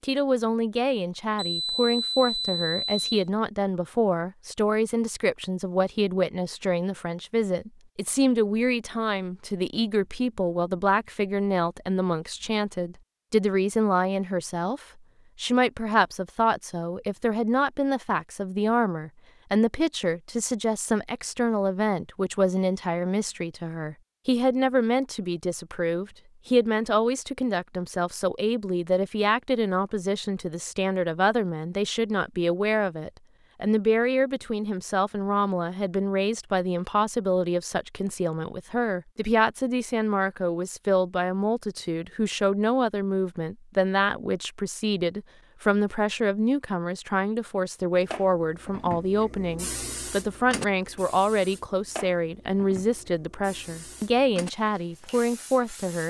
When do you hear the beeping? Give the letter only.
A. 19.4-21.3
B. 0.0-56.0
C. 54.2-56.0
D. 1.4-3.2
D.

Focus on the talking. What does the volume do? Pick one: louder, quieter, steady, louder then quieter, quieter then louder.
steady.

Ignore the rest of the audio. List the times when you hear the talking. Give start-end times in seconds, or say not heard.
0.0-56.0.